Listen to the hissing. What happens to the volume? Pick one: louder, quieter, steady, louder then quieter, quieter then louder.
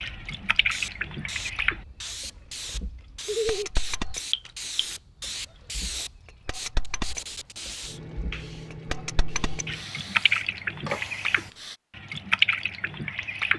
steady.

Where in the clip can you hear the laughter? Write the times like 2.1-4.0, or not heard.
3.2-3.7.